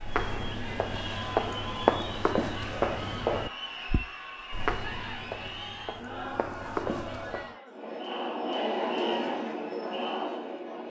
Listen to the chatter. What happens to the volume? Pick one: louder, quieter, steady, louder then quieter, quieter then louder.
louder.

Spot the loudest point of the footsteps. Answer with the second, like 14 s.
2 s.